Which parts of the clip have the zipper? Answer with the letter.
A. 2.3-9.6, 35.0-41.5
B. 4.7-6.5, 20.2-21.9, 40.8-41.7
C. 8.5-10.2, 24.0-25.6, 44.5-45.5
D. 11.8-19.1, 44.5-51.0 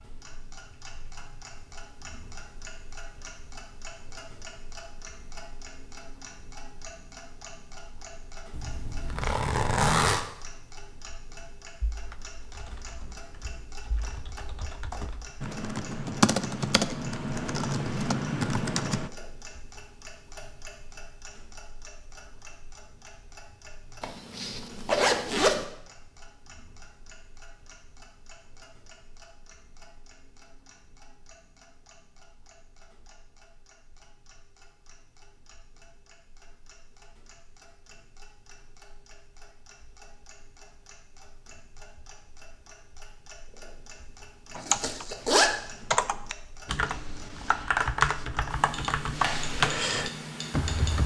C.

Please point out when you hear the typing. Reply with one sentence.
You can hear the typing from 11.8 to 19.1 s and from 44.5 to 51.0 s.